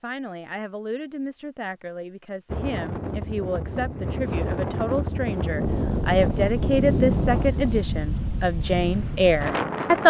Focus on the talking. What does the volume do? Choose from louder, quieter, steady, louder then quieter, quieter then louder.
louder.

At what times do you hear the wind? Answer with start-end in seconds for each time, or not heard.
2.5-10.0.